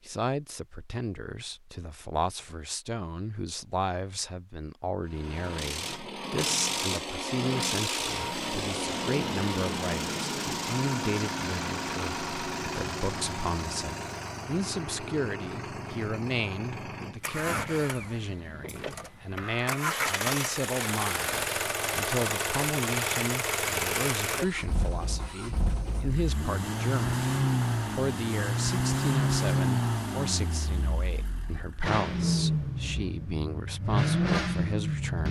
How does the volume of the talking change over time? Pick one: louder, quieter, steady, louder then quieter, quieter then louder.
steady.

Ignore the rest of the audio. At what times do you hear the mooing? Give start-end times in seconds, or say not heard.
not heard.